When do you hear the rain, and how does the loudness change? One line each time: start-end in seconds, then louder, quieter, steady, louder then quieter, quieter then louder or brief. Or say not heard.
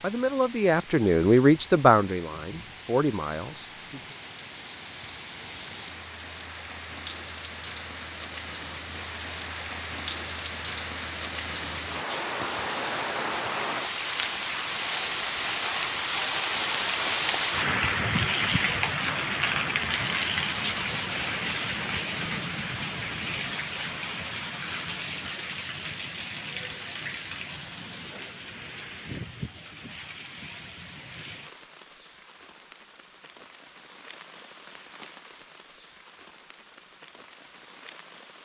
0.0-38.4 louder then quieter.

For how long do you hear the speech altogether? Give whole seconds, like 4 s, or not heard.
4 s.